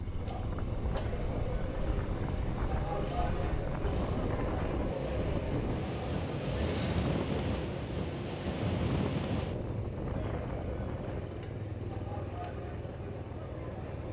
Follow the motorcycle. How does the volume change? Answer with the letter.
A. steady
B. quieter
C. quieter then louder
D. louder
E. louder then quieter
A.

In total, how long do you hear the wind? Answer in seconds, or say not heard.
14 s.